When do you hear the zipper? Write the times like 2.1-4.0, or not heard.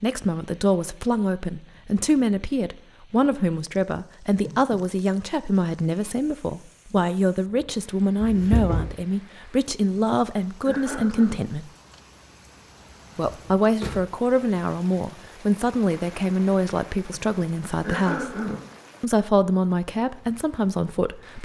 not heard.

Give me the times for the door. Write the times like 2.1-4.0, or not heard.
8.2-8.8, 13.2-14.1.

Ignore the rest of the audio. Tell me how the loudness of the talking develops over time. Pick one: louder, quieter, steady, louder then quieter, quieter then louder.
steady.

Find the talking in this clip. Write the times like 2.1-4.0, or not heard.
0.0-11.7, 13.2-21.3.